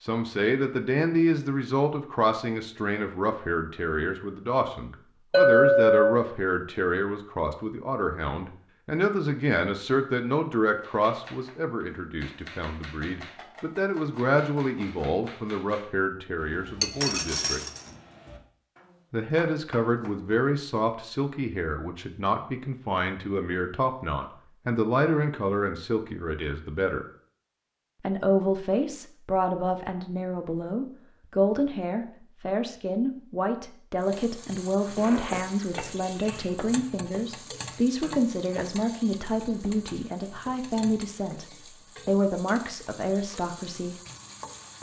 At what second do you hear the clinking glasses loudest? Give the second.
6 s.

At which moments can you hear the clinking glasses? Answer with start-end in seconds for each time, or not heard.
5.3-6.2, 16.8-17.8, 35.0-36.5.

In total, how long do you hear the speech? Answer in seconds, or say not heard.
41 s.